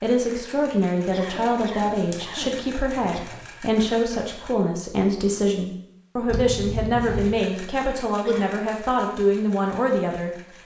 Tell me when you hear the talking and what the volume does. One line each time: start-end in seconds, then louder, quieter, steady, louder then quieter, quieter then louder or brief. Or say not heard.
0.0-10.3 steady.